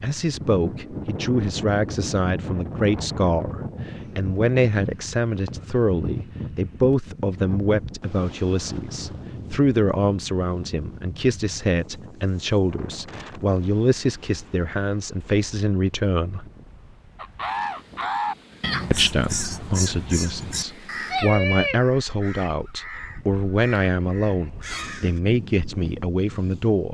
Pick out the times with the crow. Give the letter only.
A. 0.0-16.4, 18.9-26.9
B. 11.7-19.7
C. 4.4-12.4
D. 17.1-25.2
D.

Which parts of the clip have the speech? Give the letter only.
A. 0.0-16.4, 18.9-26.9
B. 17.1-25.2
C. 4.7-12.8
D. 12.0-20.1
A.